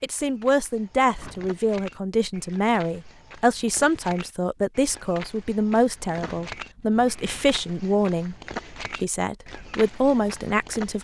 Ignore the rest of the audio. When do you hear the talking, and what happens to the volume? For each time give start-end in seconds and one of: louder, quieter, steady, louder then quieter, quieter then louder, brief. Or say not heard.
0.0-8.3 steady
9.0-11.0 brief.